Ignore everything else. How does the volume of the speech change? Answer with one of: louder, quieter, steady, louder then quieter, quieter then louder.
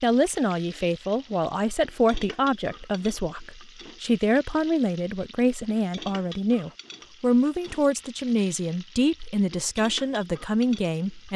steady.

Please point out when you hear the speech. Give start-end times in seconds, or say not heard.
0.0-11.3.